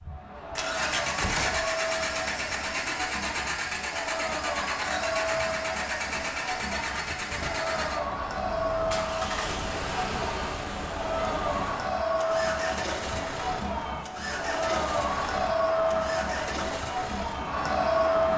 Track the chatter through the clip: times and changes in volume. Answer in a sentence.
The chatter can be heard from 0.0 to 18.3 s, getting louder.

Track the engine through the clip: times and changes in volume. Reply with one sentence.
You can hear the engine from 0.0 to 18.3 s, getting quieter.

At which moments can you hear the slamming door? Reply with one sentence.
You can hear the slamming door from 0.8 to 1.8 s.